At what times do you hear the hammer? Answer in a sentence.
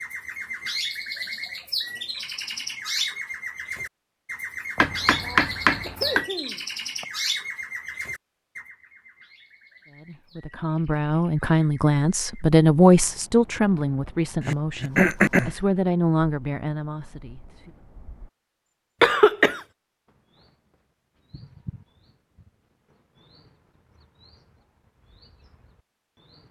You can hear the hammer from 4.8 to 6.2 s.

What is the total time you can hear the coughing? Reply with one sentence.
You can hear the coughing for 4 seconds altogether.